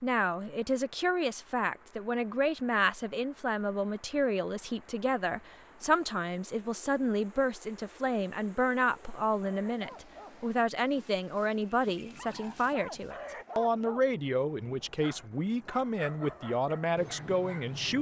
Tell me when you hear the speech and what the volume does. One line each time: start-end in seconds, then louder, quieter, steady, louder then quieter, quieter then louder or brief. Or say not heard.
0.0-17.9 steady.